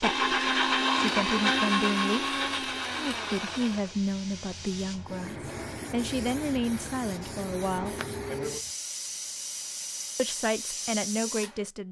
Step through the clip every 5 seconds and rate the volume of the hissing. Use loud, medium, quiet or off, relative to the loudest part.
medium, loud, loud.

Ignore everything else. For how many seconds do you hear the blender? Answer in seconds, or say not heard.
4 s.